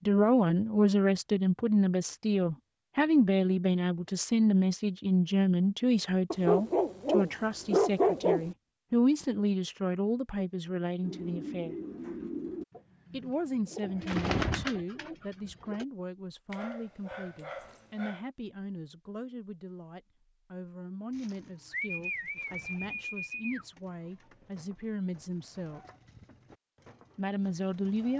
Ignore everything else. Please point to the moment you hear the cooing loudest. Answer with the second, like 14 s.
14 s.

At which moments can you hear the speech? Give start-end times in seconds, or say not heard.
0.1-11.8, 13.1-25.8, 27.1-28.1.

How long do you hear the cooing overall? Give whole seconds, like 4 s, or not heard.
12 s.